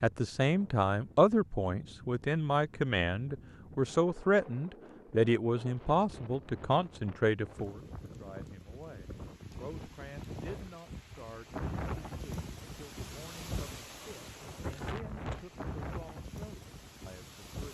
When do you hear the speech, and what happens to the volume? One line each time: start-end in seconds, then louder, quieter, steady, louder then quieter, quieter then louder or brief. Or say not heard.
0.0-17.6 quieter.